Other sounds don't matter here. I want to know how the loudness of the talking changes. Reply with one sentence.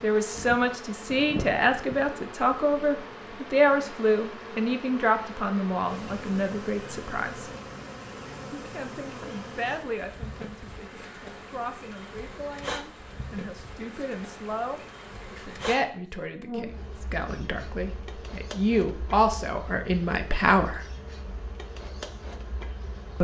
The loudness of the talking goes down, then up.